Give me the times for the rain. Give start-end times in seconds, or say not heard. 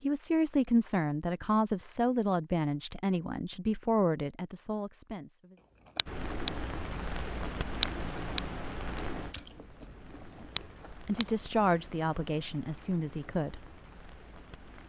6.0-14.8.